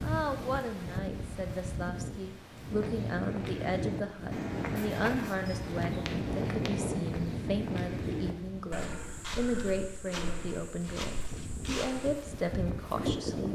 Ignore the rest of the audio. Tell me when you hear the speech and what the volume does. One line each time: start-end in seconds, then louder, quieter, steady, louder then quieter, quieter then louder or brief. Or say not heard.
0.0-13.5 steady.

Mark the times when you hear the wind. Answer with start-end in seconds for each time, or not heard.
0.0-13.5.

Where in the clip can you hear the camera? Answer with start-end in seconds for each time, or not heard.
not heard.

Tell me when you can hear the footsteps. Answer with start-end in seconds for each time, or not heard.
2.5-12.3.